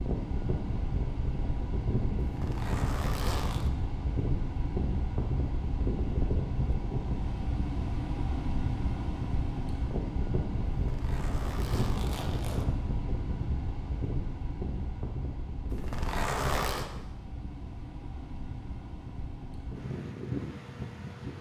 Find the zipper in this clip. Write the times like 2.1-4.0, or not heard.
2.1-3.7, 10.8-12.7, 15.7-16.9.